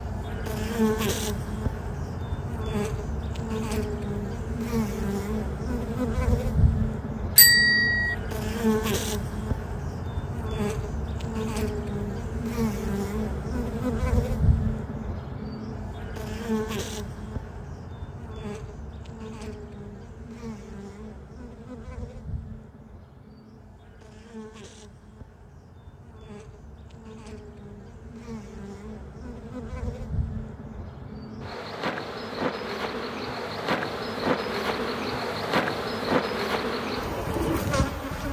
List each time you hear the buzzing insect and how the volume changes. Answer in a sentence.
You can hear the buzzing insect from 0.0 to 38.2 s, getting quieter then louder.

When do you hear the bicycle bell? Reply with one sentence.
You can hear the bicycle bell from 7.3 to 8.2 s.